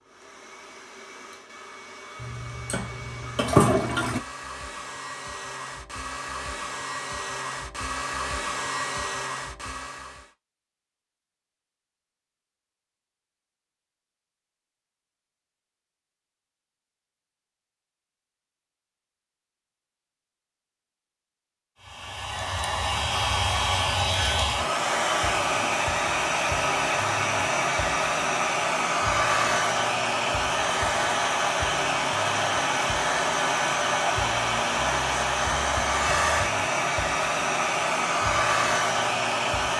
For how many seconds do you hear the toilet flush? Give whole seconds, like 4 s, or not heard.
2 s.